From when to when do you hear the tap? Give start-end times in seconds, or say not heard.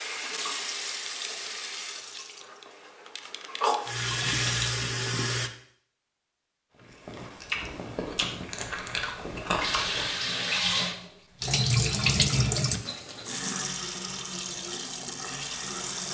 0.0-5.5, 9.6-16.0.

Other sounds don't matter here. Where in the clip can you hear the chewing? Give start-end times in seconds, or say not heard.
6.8-10.2.